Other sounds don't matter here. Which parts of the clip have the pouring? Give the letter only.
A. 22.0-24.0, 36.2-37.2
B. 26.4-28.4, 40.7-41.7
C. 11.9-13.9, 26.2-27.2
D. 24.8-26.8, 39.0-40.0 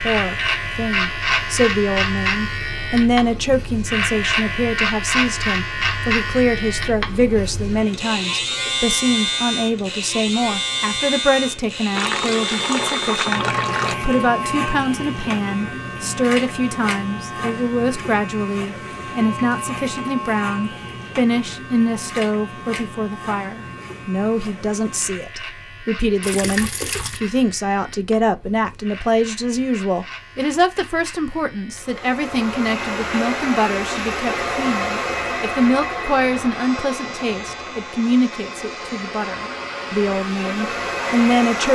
C.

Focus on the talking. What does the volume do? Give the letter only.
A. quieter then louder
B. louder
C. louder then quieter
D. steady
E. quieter
D.